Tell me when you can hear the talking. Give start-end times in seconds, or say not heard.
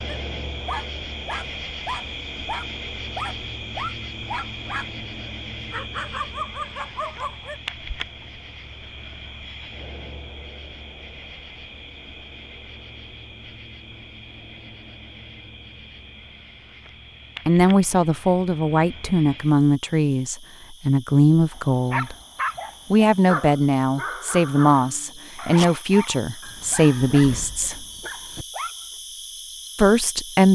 17.4-22.1, 22.9-27.9, 29.8-30.4.